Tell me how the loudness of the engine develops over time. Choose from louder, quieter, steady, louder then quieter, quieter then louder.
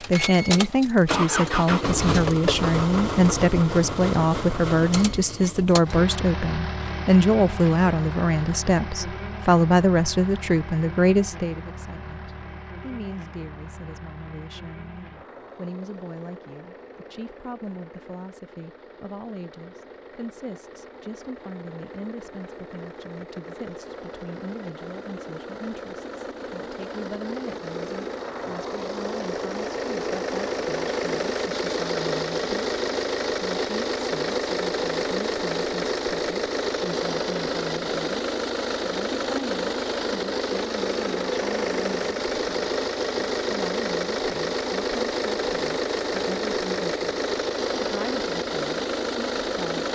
quieter then louder.